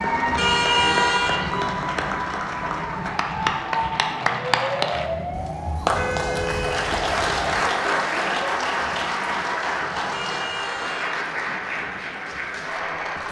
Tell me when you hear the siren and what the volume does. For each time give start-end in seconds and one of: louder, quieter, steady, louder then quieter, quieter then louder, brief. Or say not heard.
0.0-13.2 quieter.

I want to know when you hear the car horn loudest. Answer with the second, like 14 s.
1 s.